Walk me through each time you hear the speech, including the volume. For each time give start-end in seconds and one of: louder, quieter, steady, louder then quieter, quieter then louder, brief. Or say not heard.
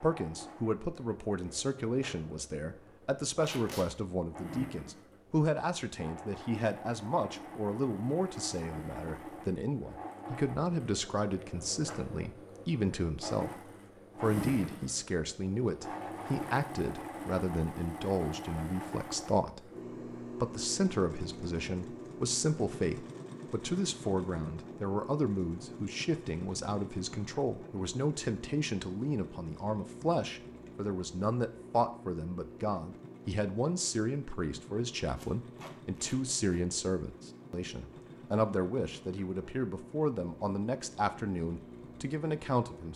0.0-42.9 steady.